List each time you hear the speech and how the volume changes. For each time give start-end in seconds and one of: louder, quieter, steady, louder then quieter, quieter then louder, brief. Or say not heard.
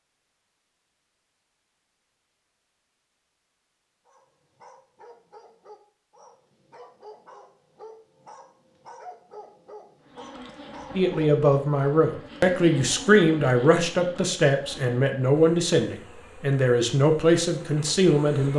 10.9-18.5 steady.